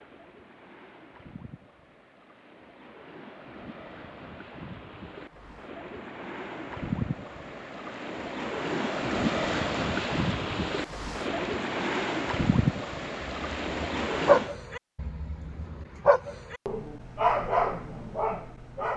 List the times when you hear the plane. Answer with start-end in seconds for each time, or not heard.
not heard.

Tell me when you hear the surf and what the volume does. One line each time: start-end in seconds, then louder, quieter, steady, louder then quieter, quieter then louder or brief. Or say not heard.
0.0-14.6 louder.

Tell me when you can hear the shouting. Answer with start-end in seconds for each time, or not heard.
not heard.